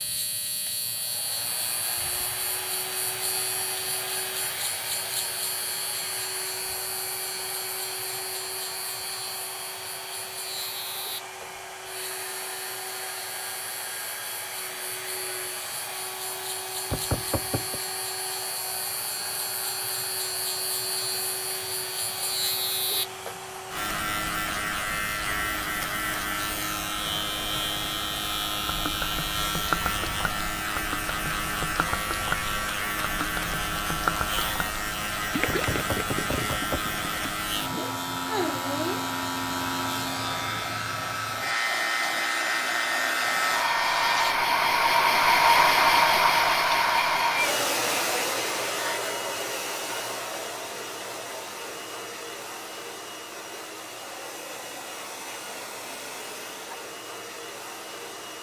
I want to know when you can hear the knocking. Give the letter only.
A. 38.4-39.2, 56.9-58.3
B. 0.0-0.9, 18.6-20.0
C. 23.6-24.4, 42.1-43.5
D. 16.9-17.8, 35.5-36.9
D.